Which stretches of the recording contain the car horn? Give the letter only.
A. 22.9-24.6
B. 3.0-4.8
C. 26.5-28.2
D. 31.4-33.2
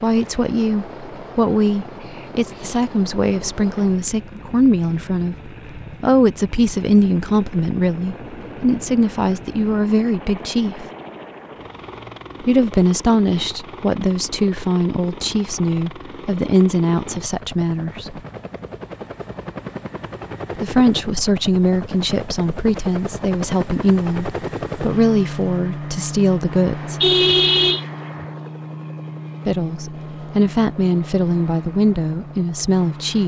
C.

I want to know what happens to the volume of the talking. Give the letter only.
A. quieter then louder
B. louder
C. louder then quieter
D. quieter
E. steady
E.